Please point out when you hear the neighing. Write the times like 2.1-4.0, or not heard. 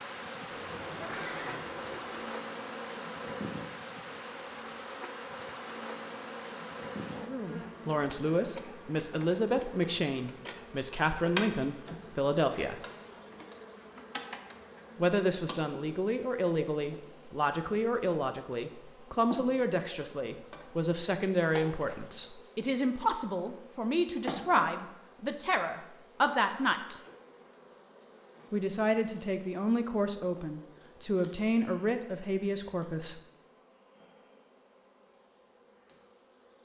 0.5-2.3.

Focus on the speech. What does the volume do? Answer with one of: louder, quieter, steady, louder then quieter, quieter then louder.
steady.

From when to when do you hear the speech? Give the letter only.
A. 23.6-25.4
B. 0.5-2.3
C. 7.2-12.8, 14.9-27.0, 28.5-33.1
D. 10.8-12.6
C.